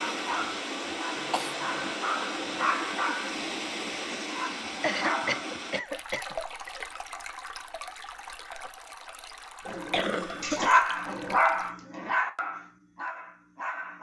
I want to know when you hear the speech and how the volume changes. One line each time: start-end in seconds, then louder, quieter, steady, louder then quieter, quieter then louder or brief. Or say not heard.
not heard.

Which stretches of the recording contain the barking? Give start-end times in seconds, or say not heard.
0.0-5.5, 9.7-13.9.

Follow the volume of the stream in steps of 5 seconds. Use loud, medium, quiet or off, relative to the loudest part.
loud, medium, medium.